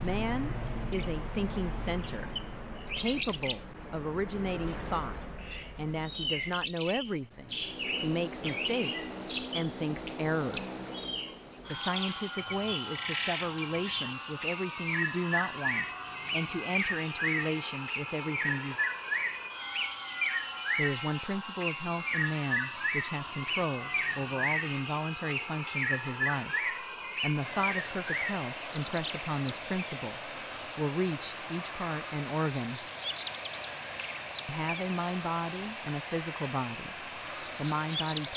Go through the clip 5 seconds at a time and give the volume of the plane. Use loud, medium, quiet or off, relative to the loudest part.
off, loud, loud, loud, loud, loud, loud, loud.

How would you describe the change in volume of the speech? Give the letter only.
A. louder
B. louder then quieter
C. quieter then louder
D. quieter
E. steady
E.